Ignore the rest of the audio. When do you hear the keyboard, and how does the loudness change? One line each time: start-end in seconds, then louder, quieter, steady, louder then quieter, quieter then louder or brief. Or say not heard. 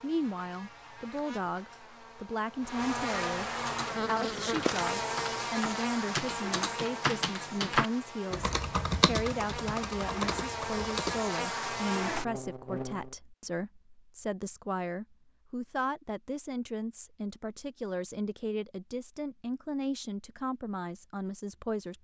3.6-11.3 louder then quieter.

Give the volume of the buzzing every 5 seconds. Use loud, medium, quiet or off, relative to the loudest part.
loud, loud, loud, off, off.